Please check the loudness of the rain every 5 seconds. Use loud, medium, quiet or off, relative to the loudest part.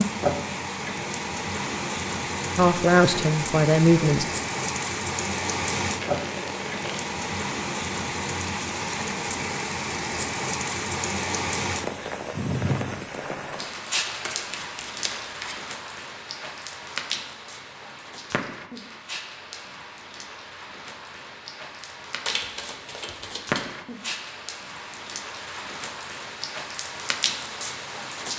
loud, loud, loud, medium, medium, medium.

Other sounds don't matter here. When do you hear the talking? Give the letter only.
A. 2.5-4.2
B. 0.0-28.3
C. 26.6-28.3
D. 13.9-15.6
A.